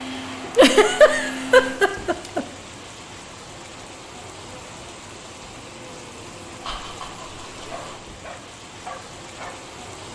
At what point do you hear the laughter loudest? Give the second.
1 s.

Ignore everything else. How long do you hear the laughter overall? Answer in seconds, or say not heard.
3 s.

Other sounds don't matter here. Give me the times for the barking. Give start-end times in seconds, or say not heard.
7.7-9.6.